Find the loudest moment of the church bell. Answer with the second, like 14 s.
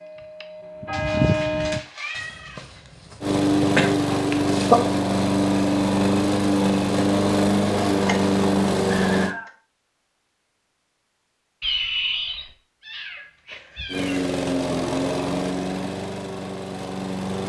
1 s.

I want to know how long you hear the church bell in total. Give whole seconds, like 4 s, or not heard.
2 s.